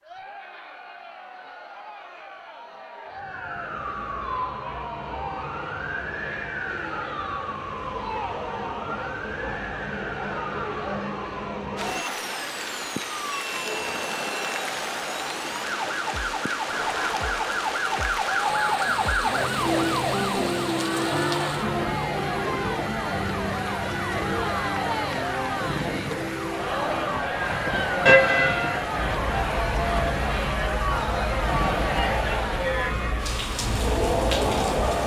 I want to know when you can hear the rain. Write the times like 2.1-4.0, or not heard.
11.8-35.0.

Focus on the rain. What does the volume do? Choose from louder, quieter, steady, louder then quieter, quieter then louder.
steady.